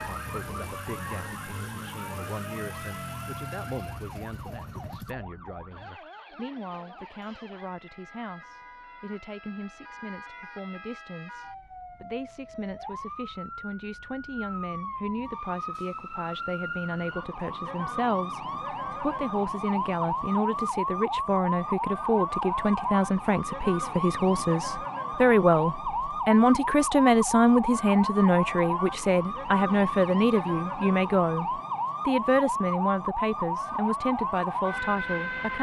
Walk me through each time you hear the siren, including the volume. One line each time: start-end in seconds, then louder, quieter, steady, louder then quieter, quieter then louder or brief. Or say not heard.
0.0-35.5 louder.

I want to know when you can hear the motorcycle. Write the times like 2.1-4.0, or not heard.
0.0-5.2.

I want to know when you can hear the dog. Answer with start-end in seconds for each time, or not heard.
not heard.